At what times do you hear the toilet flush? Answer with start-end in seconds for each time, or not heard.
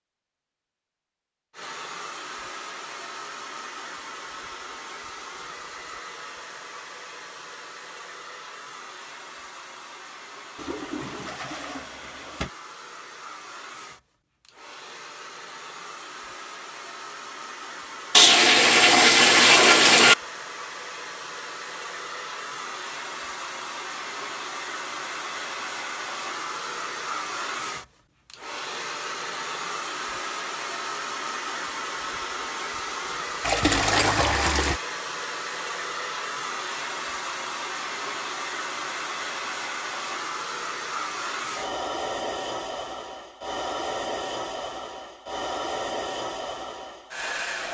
10.6-12.5, 18.1-20.1, 33.4-34.8.